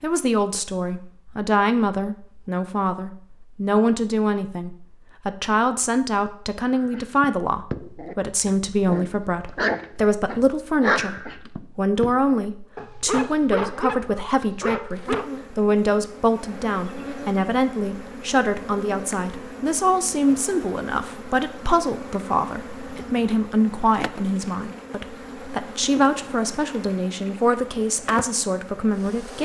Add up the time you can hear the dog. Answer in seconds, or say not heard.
9 s.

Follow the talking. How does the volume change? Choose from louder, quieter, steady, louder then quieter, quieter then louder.
steady.